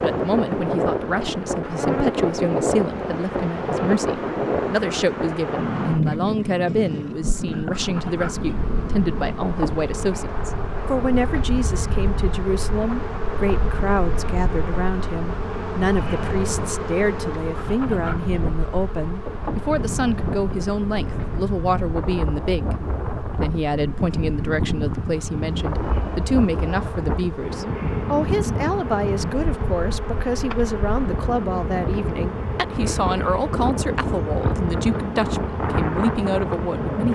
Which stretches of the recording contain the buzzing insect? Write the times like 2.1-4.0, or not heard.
0.0-37.1.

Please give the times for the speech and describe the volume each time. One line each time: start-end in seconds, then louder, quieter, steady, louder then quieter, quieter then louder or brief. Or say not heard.
0.0-37.1 steady.